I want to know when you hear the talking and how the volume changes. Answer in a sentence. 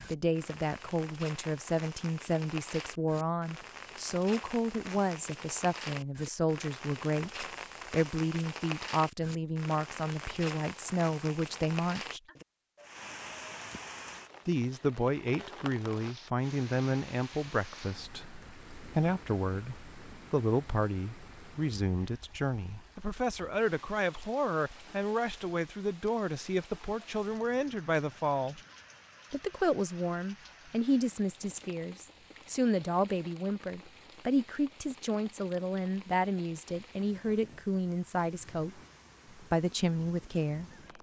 The talking can be heard from 0.1 to 12.2 s, at a steady volume; from 14.4 to 28.6 s, at a steady volume; and from 29.3 to 40.6 s, at a steady volume.